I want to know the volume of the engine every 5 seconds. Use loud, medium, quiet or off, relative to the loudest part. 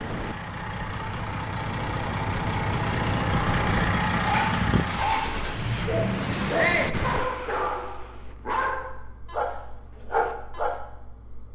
loud, medium, quiet.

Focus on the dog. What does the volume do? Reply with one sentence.
The loudness of the dog stays about the same.